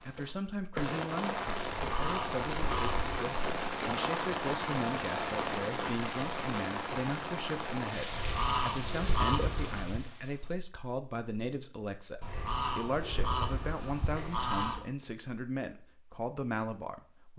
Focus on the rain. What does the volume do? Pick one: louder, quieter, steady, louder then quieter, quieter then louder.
quieter.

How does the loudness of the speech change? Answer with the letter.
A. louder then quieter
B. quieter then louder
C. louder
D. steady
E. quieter
D.